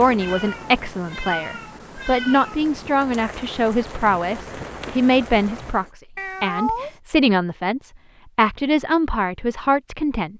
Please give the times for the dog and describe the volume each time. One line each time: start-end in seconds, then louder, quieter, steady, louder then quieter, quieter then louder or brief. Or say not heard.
not heard.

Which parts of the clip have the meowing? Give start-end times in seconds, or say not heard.
0.2-3.0, 6.2-6.9.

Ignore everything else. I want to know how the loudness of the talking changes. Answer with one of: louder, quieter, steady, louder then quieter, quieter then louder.
steady.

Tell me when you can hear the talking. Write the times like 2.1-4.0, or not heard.
0.0-10.3.